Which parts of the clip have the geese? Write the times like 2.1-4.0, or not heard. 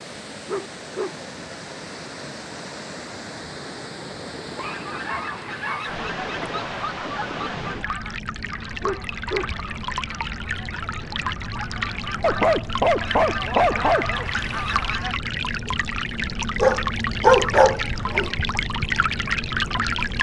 4.6-15.2.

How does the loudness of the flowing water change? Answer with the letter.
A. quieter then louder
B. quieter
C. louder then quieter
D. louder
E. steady
D.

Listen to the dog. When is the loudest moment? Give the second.
17 s.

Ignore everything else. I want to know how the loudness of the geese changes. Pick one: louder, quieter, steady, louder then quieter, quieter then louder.
quieter then louder.